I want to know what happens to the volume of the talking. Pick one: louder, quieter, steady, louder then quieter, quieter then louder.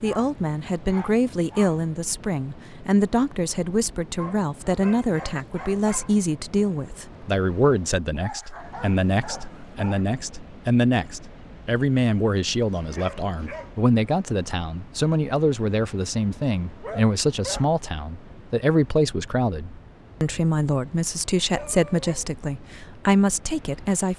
steady.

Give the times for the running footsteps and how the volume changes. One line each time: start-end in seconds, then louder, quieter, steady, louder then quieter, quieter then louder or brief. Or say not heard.
not heard.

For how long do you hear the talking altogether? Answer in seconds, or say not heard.
24 s.